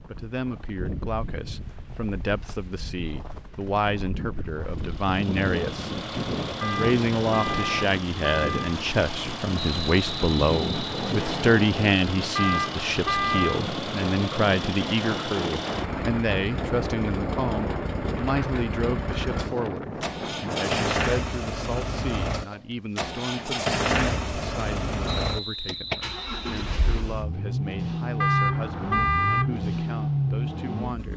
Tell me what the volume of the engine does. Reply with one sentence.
The volume of the engine goes up.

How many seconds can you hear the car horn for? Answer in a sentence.
The car horn can be heard for 5 seconds in total.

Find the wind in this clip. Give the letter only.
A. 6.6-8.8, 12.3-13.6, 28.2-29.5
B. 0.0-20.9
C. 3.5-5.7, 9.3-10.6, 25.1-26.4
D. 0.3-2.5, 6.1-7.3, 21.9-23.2
B.